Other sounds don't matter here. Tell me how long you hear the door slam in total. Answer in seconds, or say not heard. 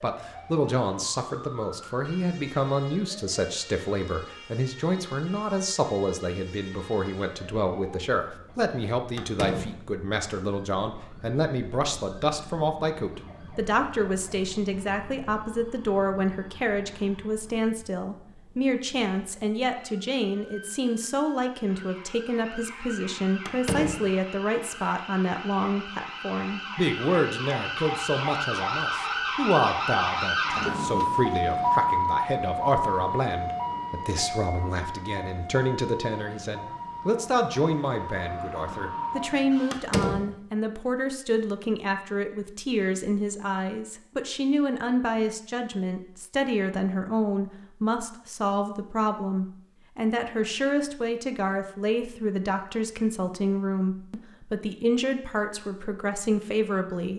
2 s.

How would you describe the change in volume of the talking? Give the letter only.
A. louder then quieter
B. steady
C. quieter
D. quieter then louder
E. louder
B.